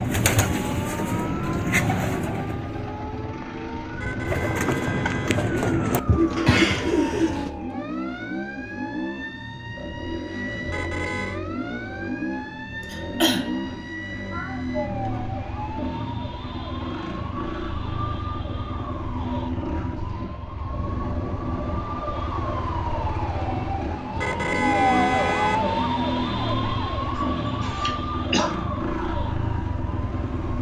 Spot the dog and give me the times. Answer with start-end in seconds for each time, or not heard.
not heard.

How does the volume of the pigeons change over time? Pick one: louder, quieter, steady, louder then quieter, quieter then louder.
quieter then louder.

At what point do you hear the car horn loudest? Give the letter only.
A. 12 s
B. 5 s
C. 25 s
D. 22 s
C.